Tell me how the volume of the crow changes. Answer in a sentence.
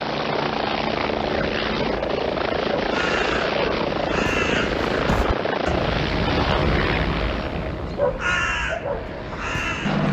The loudness of the crow goes up.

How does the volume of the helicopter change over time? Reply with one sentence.
The volume of the helicopter goes down.